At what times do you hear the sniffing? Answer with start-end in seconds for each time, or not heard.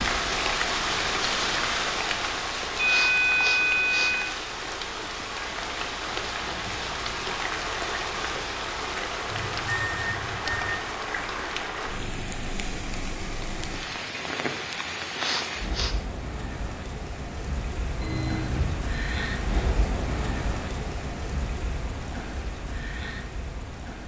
2.8-4.2, 15.1-16.1.